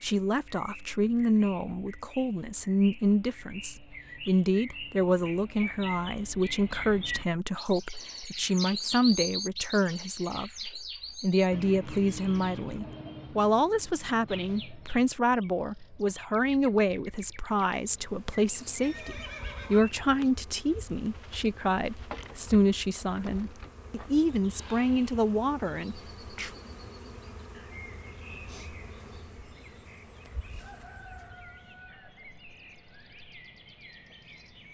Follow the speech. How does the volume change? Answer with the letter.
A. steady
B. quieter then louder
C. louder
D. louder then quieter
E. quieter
A.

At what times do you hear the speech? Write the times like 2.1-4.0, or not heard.
0.0-26.5.